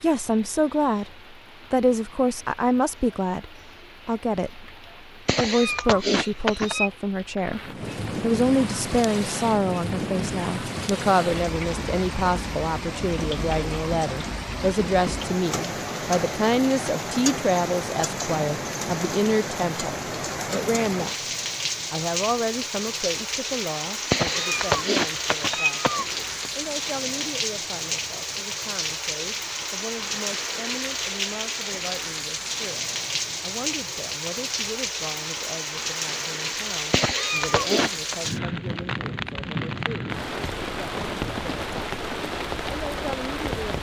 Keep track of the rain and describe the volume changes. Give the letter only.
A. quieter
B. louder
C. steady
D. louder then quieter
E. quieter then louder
B.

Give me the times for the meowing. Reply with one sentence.
You can hear the meowing from 5.2 to 6.9 s, from 24.1 to 26.4 s and from 36.9 to 38.1 s.